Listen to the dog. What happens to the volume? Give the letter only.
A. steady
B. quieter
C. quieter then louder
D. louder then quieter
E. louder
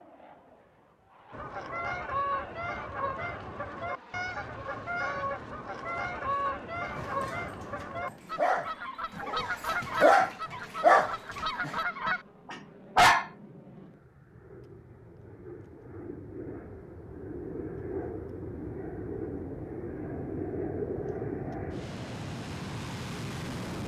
D.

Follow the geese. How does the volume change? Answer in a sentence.
The volume of the geese stays about the same.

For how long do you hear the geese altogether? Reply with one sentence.
The geese can be heard for 11 seconds in total.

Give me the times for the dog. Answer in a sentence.
You can hear the dog from 6.8 to 13.2 s.